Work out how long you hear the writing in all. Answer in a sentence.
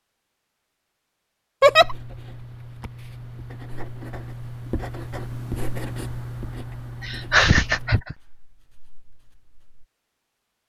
The writing can be heard for 8 seconds in total.